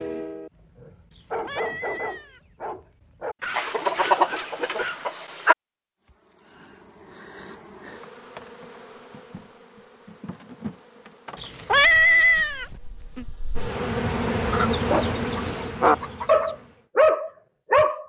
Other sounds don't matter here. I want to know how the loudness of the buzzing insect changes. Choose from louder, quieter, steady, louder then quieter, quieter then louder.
louder.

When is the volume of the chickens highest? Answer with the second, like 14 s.
4 s.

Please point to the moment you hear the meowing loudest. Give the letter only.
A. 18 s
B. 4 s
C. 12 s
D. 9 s
C.